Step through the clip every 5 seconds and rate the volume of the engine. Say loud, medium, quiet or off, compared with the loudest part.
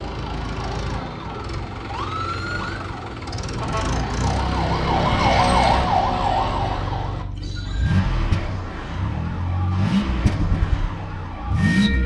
medium, loud, loud.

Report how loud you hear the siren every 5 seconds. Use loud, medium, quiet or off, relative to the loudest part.
medium, loud, medium.